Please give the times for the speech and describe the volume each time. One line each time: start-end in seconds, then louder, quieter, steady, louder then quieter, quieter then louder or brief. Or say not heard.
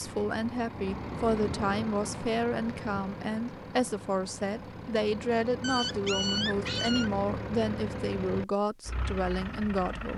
0.0-10.1 steady.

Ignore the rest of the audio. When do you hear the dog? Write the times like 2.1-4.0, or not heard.
5.6-7.1.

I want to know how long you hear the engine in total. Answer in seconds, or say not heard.
10 s.